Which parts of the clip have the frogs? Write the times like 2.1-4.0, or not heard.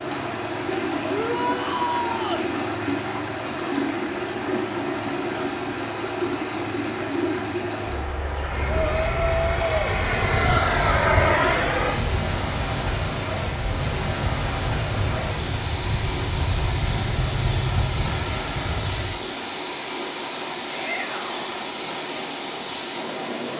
not heard.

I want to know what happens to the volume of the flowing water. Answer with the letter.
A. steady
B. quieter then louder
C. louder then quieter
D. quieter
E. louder
A.